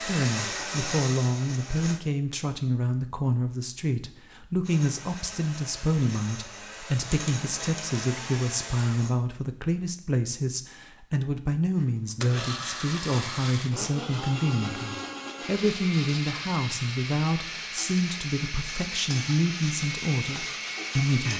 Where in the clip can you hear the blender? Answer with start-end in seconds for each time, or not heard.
0.0-2.0, 4.6-9.2, 11.8-21.3.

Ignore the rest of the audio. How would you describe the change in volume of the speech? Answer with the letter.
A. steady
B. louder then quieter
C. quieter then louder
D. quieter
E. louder
A.